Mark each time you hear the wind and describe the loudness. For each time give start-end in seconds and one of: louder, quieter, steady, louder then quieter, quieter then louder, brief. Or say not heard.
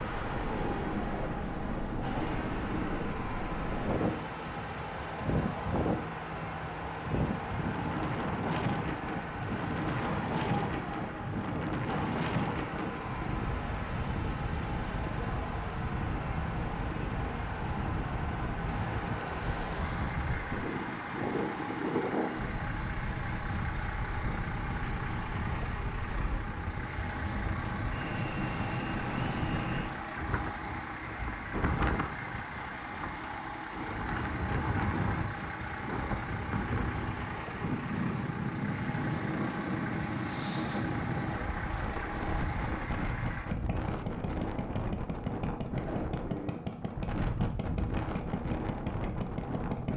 0.0-49.9 steady.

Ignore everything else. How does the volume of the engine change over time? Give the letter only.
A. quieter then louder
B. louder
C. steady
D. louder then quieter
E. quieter
C.